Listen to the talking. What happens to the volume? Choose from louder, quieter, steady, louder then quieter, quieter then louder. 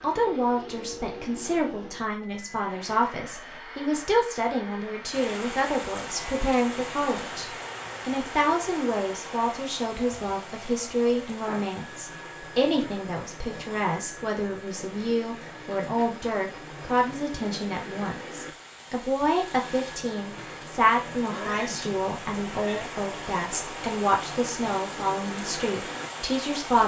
steady.